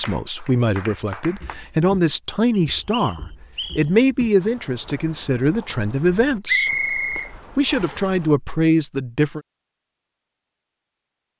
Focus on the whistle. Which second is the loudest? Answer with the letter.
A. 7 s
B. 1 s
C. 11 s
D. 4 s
A.